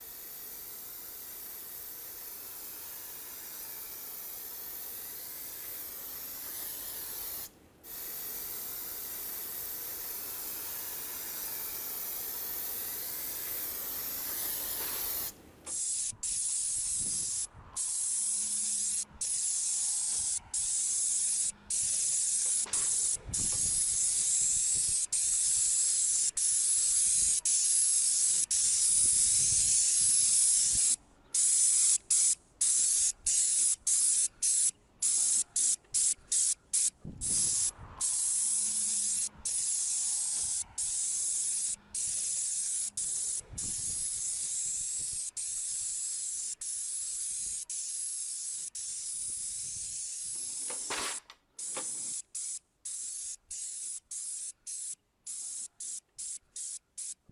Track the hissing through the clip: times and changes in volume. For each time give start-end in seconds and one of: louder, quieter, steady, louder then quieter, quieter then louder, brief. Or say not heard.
0.0-57.2 louder then quieter.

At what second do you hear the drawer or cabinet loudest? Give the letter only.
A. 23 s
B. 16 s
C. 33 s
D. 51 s
D.